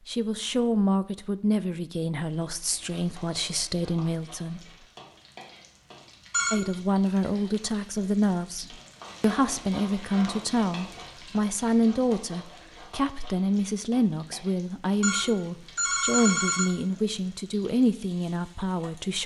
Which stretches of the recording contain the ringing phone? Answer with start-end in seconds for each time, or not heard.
6.3-6.7, 15.0-16.8.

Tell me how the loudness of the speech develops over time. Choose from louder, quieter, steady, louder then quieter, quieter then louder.
steady.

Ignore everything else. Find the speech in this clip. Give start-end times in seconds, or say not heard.
0.1-4.6, 6.5-19.2.